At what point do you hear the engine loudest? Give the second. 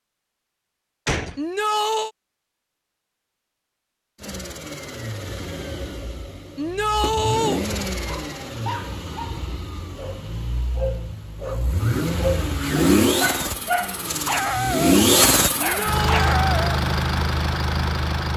15 s.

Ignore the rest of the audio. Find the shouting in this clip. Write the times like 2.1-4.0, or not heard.
1.4-2.1, 6.5-7.6, 15.6-16.4.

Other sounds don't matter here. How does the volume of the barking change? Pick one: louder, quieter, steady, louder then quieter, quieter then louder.
louder.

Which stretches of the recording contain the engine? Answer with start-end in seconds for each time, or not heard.
4.2-18.3.